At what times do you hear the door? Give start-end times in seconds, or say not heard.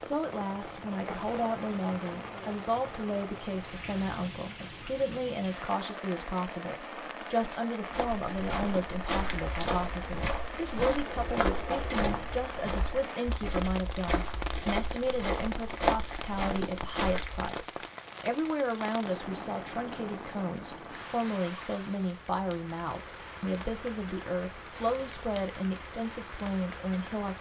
11.0-12.3.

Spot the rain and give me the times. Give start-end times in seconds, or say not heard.
0.0-27.3.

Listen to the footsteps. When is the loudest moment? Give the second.
16 s.